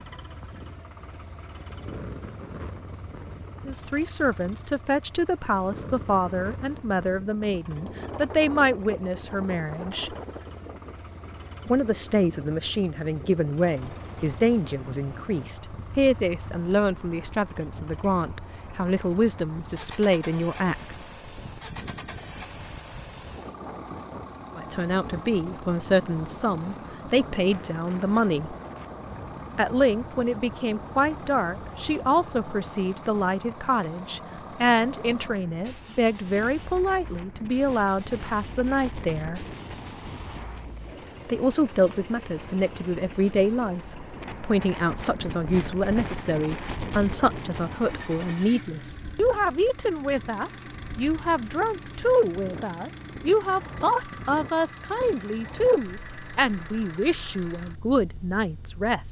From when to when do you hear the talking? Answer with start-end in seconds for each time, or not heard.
3.6-10.2, 11.7-21.0, 24.6-28.6, 29.6-39.5, 41.2-59.0.